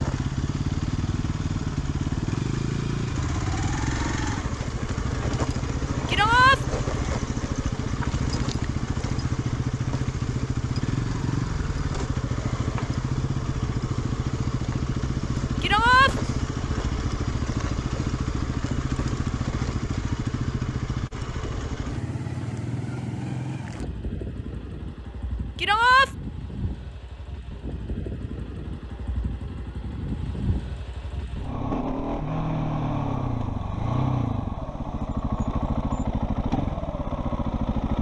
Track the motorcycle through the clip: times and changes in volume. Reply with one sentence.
The motorcycle can be heard from 0.0 to 37.9 s, getting quieter then louder.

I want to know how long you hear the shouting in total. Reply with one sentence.
The shouting can be heard for 2 seconds in total.